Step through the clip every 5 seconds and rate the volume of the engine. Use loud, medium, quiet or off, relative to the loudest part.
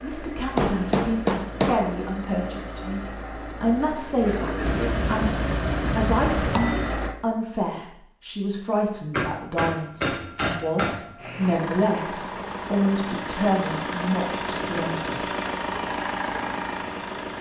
medium, loud, loud, loud.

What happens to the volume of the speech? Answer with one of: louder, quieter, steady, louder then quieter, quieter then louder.
steady.